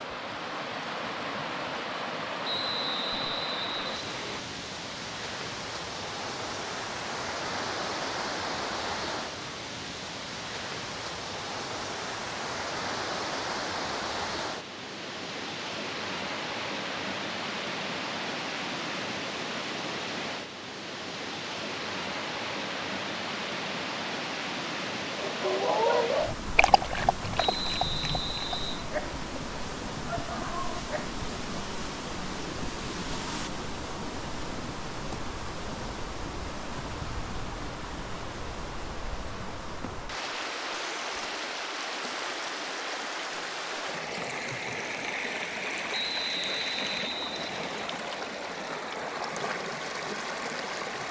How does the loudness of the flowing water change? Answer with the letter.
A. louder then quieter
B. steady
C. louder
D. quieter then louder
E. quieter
B.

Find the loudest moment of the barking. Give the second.
26 s.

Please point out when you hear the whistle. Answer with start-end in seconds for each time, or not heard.
2.4-4.4, 27.4-28.9, 45.9-47.9.